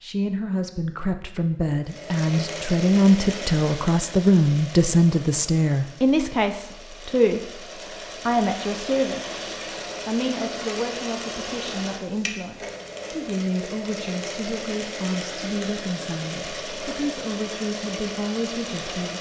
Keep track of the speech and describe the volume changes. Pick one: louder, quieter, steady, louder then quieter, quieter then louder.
quieter.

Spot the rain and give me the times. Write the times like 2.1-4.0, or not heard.
not heard.